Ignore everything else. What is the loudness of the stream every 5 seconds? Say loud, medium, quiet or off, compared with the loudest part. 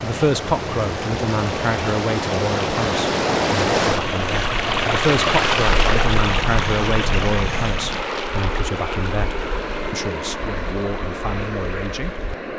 loud, loud, quiet.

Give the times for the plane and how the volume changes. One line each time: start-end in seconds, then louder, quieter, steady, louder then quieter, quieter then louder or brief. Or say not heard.
0.0-12.5 steady.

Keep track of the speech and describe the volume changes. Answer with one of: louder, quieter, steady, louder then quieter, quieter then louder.
quieter.